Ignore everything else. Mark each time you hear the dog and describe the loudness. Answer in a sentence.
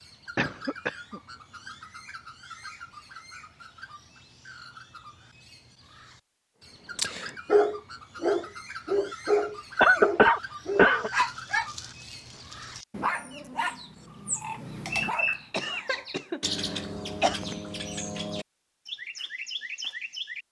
The dog can be heard from 7.0 to 15.8 s, getting quieter.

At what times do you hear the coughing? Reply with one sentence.
The coughing can be heard from 0.3 to 1.2 s, from 9.8 to 11.1 s and from 15.5 to 17.4 s.